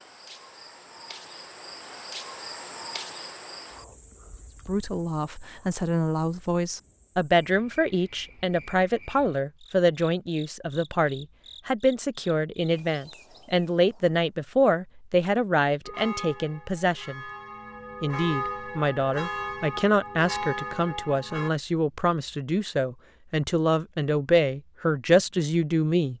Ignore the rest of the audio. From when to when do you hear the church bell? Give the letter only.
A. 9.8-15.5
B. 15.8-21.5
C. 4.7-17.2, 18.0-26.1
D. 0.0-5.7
B.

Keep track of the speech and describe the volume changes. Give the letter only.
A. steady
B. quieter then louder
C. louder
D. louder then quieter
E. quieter
A.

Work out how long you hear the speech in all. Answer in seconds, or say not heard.
21 s.